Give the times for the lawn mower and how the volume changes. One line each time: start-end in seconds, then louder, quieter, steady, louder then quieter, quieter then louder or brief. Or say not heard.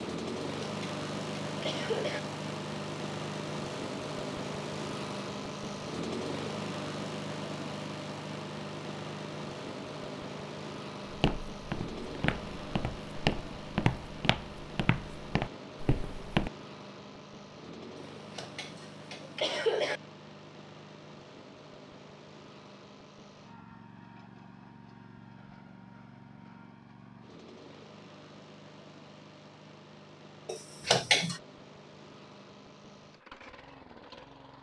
0.0-34.5 quieter.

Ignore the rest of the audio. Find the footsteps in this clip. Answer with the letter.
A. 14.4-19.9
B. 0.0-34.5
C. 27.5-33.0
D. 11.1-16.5
D.